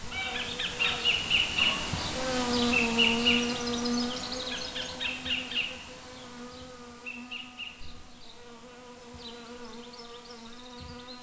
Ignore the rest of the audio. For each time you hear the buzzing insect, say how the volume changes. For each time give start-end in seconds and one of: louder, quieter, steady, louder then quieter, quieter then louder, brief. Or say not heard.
0.0-11.1 quieter.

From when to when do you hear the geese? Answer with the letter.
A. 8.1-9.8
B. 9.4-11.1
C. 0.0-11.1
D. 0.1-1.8
D.